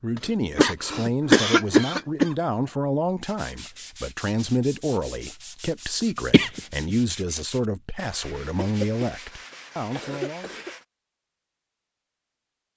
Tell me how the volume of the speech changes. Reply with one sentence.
The loudness of the speech stays about the same.